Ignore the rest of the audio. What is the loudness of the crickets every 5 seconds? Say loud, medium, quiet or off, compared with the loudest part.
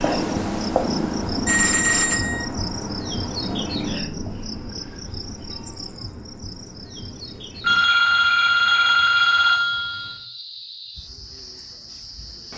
loud, medium, medium.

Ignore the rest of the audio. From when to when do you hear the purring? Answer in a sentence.
The purring can be heard from 0.0 to 4.5 s.